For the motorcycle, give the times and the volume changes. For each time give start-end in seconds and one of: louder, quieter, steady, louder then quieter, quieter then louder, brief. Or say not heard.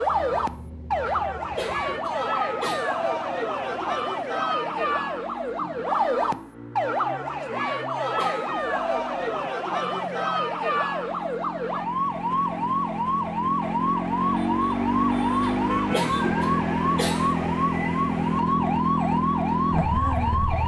0.0-20.6 louder.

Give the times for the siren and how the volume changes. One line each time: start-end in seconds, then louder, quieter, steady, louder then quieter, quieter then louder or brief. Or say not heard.
0.0-20.6 steady.